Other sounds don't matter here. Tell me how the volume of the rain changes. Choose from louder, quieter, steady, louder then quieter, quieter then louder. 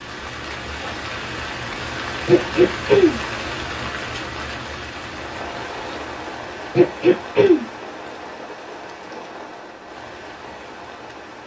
quieter.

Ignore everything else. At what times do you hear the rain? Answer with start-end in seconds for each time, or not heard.
0.0-11.4.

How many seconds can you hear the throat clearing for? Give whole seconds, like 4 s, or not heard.
2 s.